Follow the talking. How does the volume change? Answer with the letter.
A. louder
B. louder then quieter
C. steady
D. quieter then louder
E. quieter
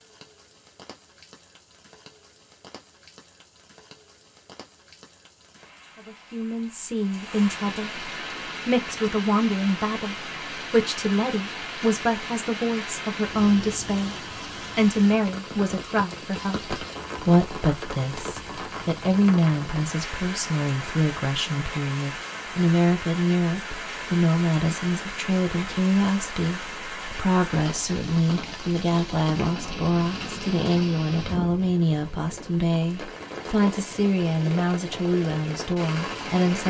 C.